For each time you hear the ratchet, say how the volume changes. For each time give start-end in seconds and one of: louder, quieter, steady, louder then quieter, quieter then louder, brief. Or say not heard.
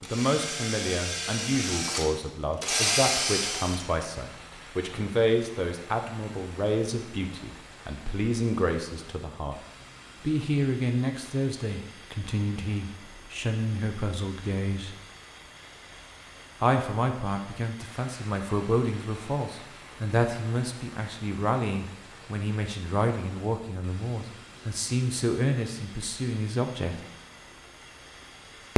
not heard.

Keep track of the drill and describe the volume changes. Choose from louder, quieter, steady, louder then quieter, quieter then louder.
louder.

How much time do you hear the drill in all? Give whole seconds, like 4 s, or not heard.
4 s.